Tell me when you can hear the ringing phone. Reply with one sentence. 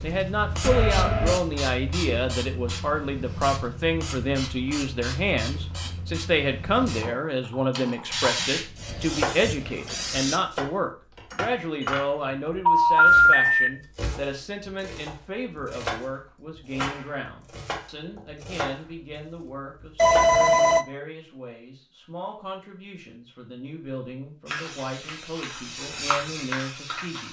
You can hear the ringing phone from 0.6 to 1.4 s, from 12.7 to 13.7 s and from 19.9 to 20.9 s.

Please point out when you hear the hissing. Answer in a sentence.
The hissing can be heard from 0.0 to 10.4 s and from 24.4 to 27.2 s.